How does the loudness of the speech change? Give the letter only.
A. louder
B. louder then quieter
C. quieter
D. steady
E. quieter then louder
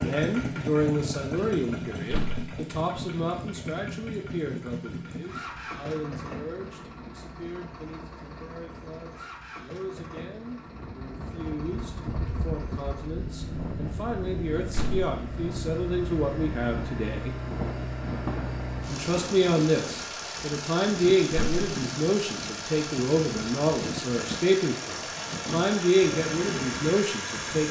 E.